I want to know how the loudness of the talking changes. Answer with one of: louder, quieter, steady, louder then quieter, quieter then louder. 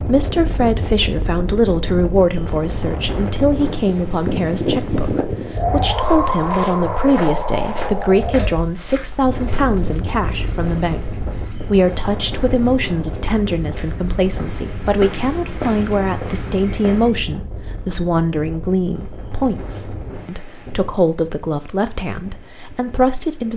steady.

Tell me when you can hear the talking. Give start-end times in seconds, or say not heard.
0.0-23.5.